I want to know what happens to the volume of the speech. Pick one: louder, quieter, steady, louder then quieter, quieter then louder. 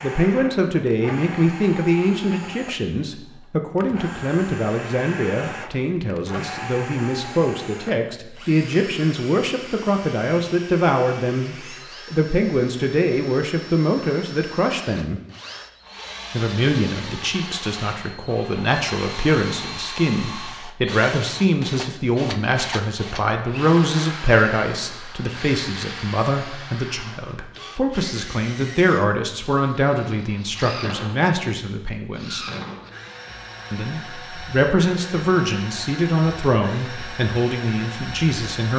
steady.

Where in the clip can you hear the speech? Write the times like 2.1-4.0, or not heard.
0.0-15.2, 16.3-32.5, 33.7-38.7.